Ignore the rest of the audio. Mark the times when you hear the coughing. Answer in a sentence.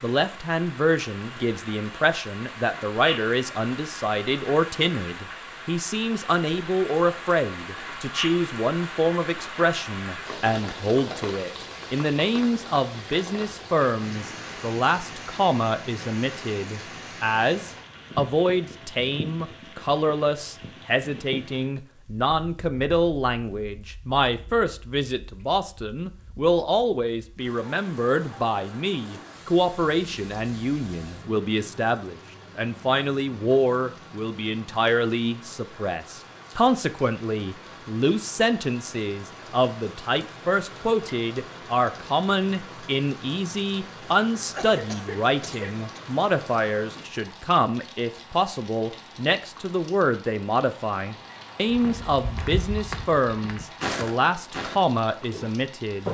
You can hear the coughing from 44.5 to 46.0 s.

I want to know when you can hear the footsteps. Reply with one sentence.
The footsteps can be heard from 51.7 to 56.0 s.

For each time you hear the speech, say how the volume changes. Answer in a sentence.
The speech can be heard from 0.0 to 56.0 s, at a steady volume.